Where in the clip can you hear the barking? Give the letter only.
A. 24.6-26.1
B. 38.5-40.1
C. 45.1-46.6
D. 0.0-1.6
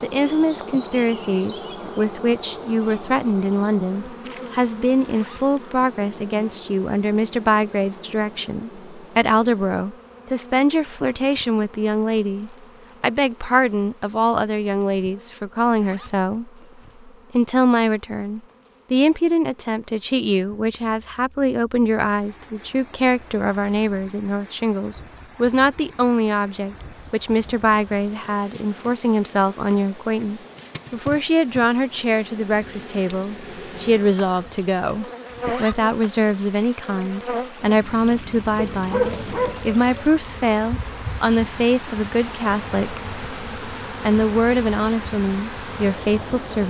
B.